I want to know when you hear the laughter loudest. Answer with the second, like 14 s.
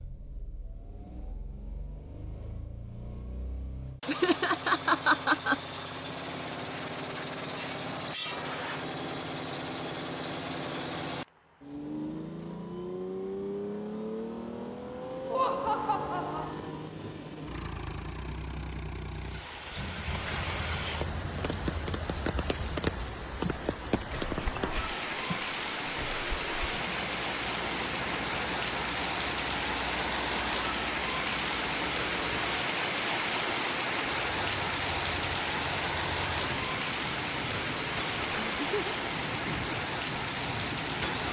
5 s.